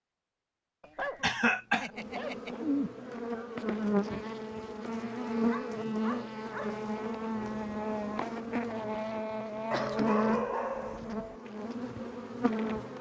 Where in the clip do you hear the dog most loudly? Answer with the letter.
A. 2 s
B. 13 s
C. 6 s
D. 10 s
D.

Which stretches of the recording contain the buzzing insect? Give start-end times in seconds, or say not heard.
1.9-12.9.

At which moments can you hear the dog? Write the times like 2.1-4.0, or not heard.
0.8-2.6, 5.5-6.8, 9.7-11.3.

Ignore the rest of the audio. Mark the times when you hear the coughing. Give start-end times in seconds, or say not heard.
1.2-1.9, 9.6-10.2.